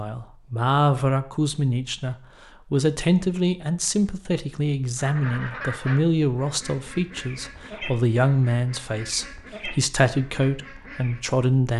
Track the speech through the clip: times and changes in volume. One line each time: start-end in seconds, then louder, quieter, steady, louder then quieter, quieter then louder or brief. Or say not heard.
0.0-11.7 steady.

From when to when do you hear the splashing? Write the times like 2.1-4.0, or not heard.
not heard.